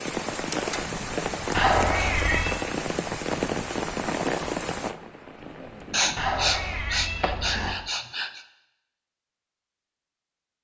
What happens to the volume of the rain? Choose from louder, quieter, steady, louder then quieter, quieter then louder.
quieter.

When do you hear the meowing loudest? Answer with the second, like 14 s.
2 s.